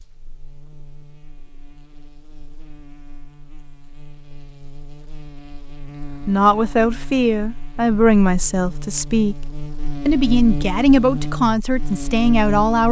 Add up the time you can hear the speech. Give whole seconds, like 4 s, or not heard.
6 s.